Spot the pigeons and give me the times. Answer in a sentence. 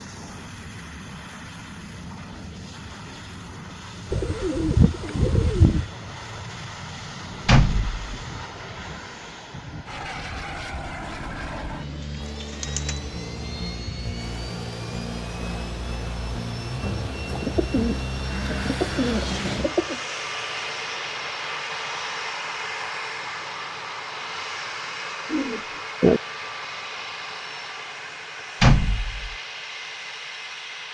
The pigeons can be heard from 4.1 to 5.8 s, from 11.0 to 13.0 s, from 17.3 to 20.0 s and from 25.3 to 26.2 s.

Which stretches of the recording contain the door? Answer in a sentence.
You can hear the door from 7.5 to 8.0 s and from 28.6 to 29.4 s.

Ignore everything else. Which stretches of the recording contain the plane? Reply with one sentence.
The plane can be heard from 0.0 to 30.8 s.